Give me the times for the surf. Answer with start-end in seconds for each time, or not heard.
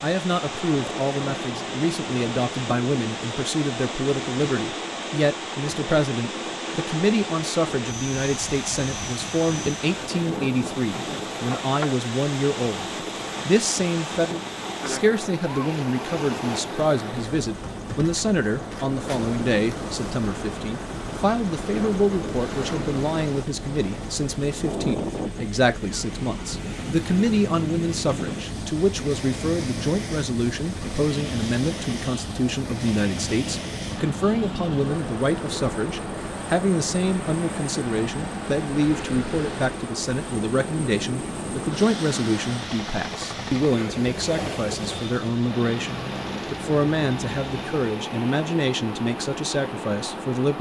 0.0-50.5.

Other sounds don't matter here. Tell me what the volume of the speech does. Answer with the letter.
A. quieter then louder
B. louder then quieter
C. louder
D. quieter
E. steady
E.